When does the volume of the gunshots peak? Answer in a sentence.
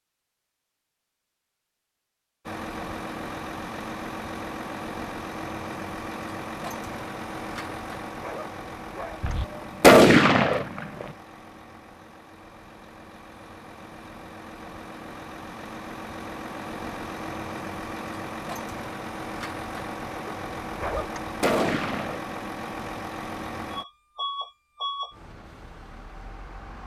The loudest moment of the gunshots is at 10 seconds.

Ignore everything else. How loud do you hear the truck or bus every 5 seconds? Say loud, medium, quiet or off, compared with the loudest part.
loud, loud, medium, loud, loud, medium.